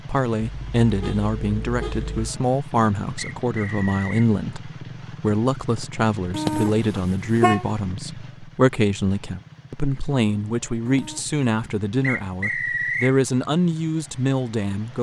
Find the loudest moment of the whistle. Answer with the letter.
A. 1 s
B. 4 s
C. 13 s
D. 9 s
C.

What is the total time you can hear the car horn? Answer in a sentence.
The car horn can be heard for 4 seconds in total.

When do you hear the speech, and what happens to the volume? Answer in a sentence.
The speech can be heard from 0.1 to 14.9 s, at a steady volume.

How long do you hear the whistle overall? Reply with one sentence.
The whistle can be heard for 2 seconds in total.